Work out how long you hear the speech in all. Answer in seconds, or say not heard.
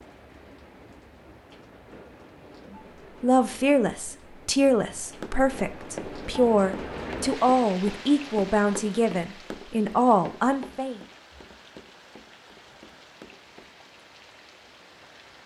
8 s.